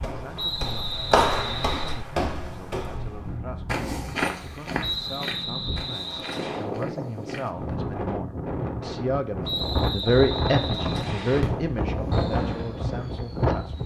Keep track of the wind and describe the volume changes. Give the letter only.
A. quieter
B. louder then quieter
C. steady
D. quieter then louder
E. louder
E.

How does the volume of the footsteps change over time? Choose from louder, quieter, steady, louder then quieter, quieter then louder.
quieter.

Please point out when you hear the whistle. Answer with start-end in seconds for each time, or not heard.
0.3-1.9, 4.8-6.7, 9.4-11.4.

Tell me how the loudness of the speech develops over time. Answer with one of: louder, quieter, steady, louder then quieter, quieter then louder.
louder then quieter.